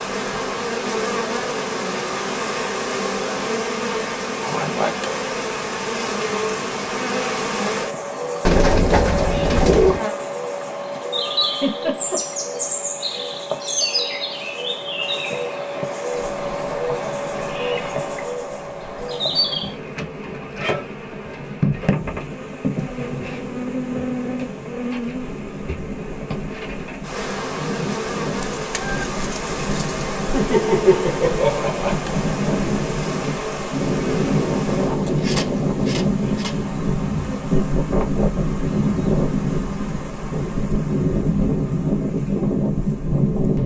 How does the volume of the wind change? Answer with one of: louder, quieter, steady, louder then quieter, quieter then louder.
louder.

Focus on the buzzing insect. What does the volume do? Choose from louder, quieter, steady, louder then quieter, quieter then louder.
quieter.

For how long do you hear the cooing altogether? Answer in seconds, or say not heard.
3 s.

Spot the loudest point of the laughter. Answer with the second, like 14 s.
31 s.